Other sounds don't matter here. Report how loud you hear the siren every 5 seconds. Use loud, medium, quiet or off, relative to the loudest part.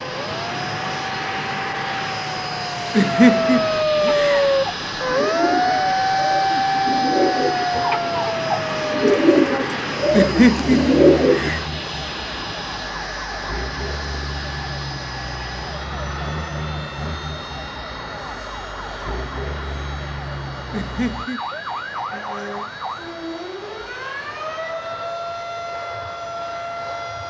loud, loud, quiet, quiet, medium, medium.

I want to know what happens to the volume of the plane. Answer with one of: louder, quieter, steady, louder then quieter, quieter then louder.
quieter.